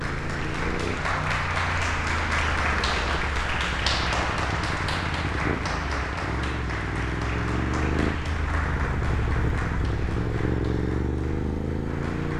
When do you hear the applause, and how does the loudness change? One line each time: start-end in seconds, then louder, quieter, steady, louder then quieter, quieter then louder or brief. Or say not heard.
0.0-12.3 quieter.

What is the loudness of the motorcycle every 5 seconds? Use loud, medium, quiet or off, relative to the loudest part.
medium, loud, loud.